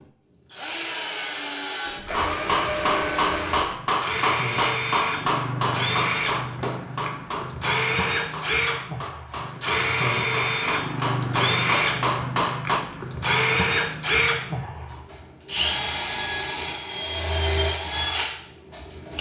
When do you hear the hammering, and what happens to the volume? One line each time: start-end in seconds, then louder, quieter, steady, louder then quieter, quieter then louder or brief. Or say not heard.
2.1-12.8 quieter then louder.